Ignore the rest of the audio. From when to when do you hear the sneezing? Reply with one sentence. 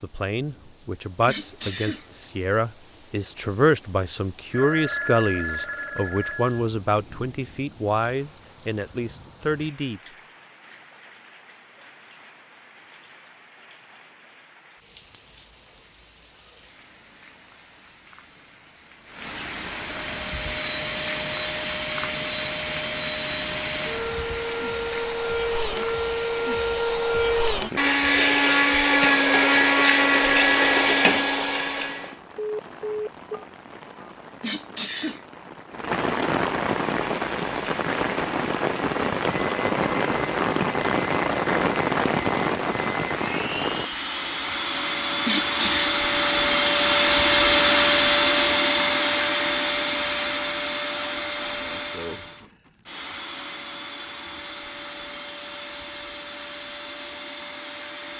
You can hear the sneezing from 1.2 to 2.0 s, from 34.4 to 35.2 s and from 45.2 to 45.9 s.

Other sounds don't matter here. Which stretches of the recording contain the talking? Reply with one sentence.
You can hear the talking from 0.0 to 10.0 s.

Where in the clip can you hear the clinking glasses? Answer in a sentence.
You can't hear the clinking glasses here.